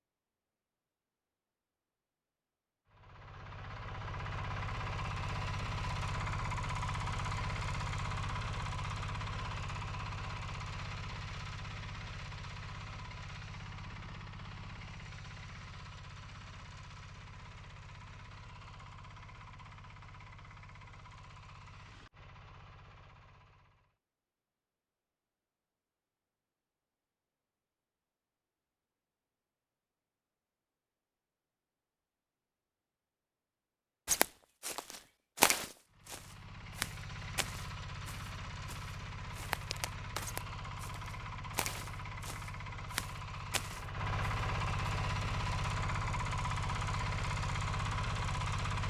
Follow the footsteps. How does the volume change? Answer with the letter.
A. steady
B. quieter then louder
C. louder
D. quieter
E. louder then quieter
D.